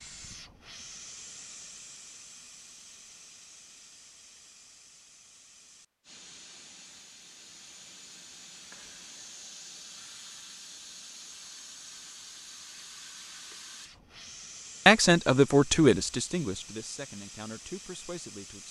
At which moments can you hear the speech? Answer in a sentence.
You can hear the speech from 14.8 to 18.6 s.